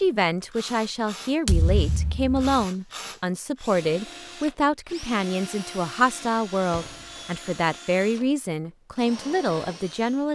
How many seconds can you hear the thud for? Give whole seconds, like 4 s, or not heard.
2 s.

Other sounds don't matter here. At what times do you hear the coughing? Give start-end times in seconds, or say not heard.
not heard.